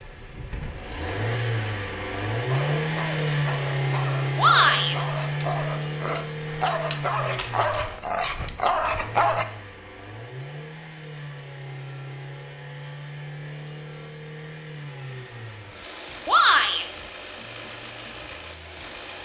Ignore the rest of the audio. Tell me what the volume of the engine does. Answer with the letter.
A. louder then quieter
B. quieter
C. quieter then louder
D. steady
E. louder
B.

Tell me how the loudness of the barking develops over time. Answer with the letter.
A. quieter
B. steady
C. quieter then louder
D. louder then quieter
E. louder
E.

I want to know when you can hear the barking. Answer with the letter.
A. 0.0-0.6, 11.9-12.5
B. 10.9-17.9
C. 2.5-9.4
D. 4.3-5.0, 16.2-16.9
C.